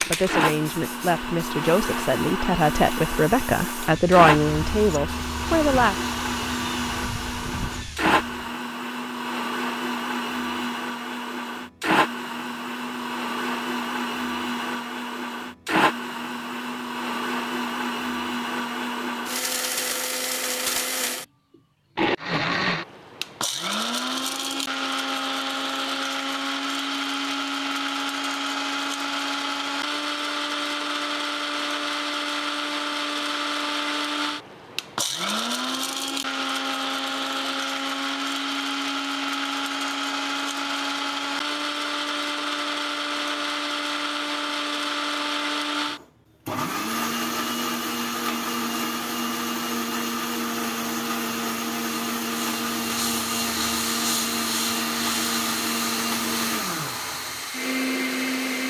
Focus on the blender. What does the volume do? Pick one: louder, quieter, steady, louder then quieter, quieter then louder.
steady.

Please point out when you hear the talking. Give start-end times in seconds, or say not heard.
0.0-6.0.